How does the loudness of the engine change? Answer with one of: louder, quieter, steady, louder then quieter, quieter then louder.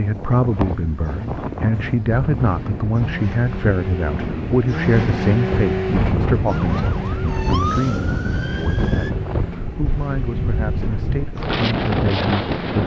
louder then quieter.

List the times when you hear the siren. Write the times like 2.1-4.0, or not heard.
6.5-9.1.